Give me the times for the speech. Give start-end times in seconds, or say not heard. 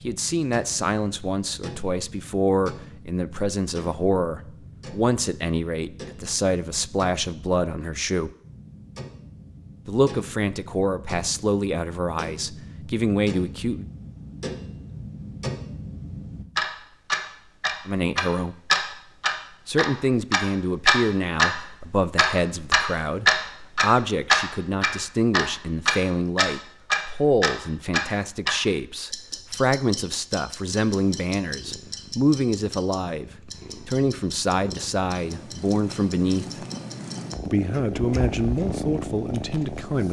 0.0-8.3, 9.8-13.8, 17.9-18.6, 19.6-36.6, 37.5-40.0.